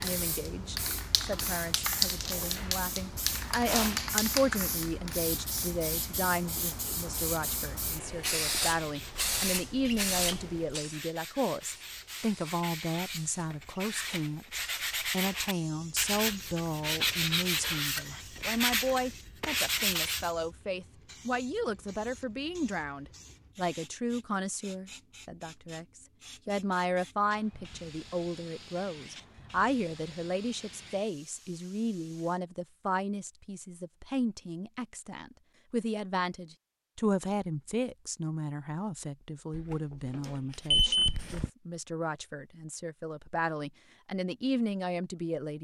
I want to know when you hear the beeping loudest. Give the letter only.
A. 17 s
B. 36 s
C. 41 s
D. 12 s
C.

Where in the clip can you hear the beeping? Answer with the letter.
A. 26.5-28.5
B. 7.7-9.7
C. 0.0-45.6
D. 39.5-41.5
D.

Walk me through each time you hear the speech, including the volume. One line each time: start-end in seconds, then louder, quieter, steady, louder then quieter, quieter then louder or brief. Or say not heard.
0.0-45.6 steady.